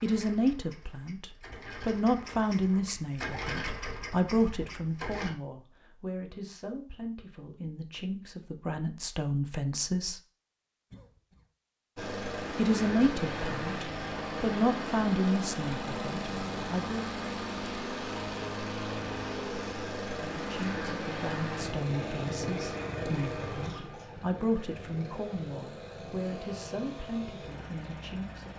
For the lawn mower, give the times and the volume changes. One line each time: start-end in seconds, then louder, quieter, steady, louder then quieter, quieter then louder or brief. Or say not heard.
0.0-5.3 louder then quieter
11.9-28.5 quieter.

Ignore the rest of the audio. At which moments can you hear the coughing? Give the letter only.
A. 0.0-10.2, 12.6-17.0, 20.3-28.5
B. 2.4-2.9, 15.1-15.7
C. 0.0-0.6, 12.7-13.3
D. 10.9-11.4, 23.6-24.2
D.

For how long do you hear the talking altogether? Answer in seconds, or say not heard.
23 s.